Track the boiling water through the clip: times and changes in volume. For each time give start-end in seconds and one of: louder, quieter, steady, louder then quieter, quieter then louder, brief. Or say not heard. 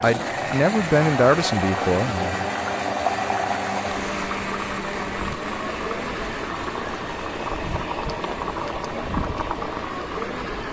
0.0-10.6 steady.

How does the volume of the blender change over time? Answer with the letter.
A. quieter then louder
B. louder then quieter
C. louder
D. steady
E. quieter
E.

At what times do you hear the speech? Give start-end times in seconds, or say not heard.
0.0-2.5.